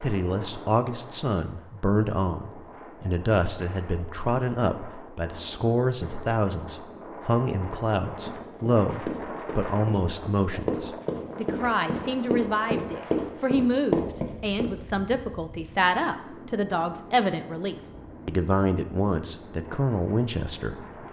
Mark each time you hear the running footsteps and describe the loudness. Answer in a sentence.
You can hear the running footsteps from 8.2 to 14.8 s, getting louder.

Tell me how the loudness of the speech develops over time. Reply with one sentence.
The volume of the speech stays about the same.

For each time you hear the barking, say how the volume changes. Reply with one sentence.
You can't hear the barking here.